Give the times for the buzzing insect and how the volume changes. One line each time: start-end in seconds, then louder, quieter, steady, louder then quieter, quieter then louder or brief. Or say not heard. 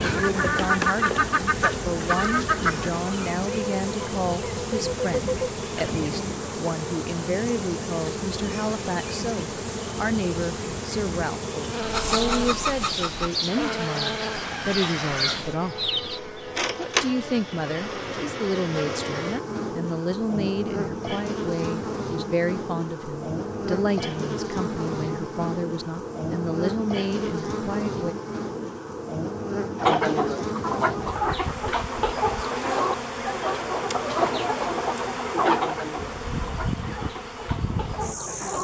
0.0-38.6 steady.